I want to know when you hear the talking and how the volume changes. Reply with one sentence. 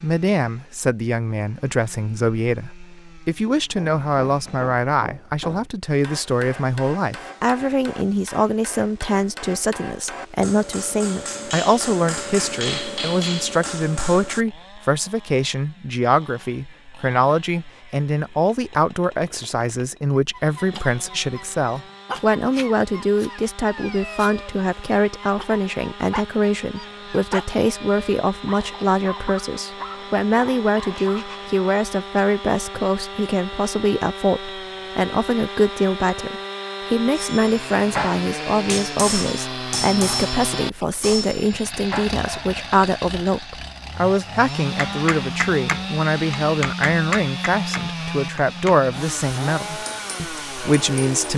You can hear the talking from 0.0 to 51.3 s, at a steady volume.